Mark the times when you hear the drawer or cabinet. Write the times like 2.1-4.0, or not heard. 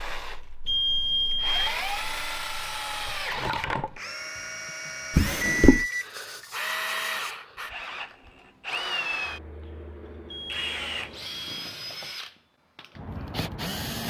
5.1-5.8.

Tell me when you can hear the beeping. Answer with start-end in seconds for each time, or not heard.
0.7-1.9, 5.4-7.3, 10.3-11.4.